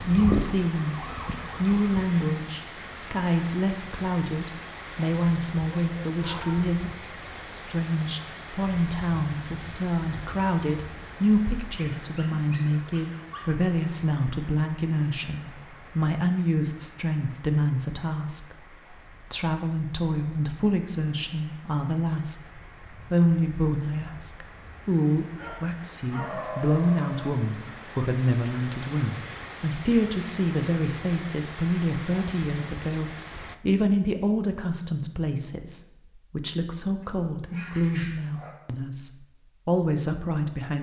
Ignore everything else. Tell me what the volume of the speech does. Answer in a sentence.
The loudness of the speech stays about the same.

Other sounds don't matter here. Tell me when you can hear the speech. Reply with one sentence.
The speech can be heard from 0.0 to 40.7 s.